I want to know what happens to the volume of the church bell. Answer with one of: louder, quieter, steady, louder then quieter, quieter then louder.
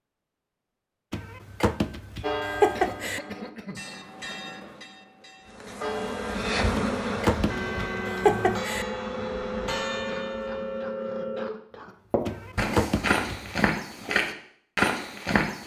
quieter then louder.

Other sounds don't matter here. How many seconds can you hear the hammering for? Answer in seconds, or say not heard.
not heard.